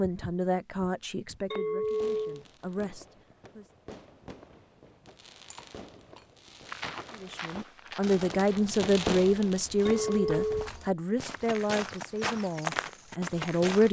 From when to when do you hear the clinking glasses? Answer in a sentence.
You can hear the clinking glasses from 1.5 to 2.5 s, from 5.5 to 6.2 s and from 9.8 to 10.7 s.